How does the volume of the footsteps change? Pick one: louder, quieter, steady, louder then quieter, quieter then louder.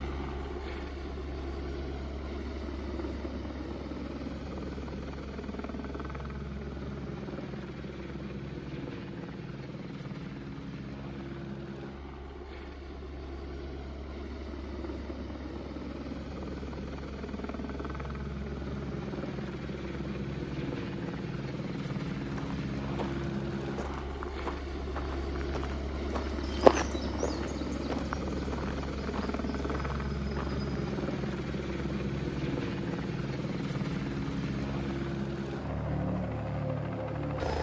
louder then quieter.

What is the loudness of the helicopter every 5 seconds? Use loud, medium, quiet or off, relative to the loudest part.
medium, medium, medium, medium, loud, loud, loud, loud.